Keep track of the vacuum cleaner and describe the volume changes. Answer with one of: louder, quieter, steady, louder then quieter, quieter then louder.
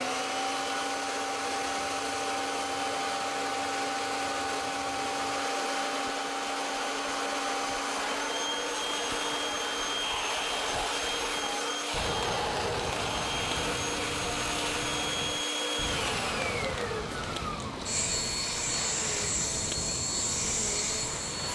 steady.